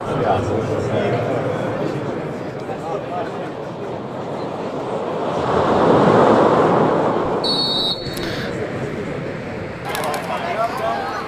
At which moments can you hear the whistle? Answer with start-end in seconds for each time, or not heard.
7.4-8.6.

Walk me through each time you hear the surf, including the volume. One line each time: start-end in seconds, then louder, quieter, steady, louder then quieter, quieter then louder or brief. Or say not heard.
0.0-11.2 louder then quieter.